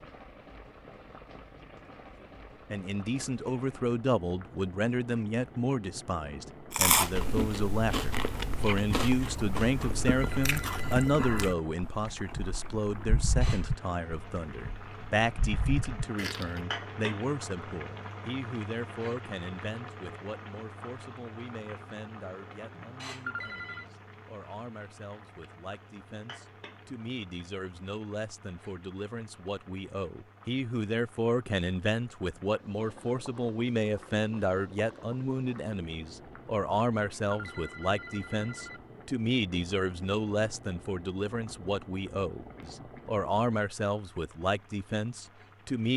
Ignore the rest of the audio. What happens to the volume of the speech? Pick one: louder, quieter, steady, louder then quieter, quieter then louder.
quieter then louder.